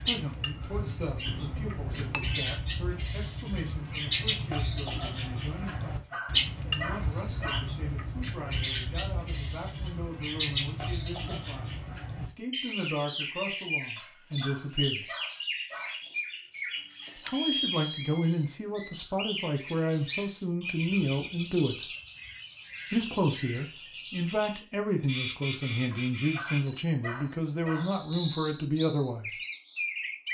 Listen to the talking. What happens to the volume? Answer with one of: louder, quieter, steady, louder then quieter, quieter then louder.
louder.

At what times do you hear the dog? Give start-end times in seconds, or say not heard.
5.7-7.7, 13.9-15.9, 25.9-27.9.